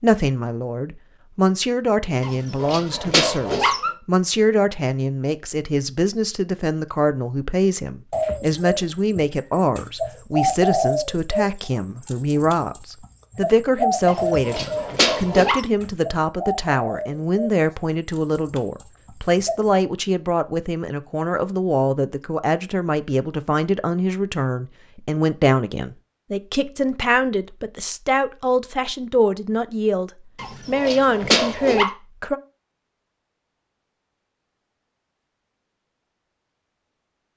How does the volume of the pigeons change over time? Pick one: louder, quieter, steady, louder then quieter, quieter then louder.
quieter.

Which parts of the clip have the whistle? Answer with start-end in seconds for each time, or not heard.
not heard.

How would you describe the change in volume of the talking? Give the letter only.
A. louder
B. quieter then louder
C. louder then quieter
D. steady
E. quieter
D.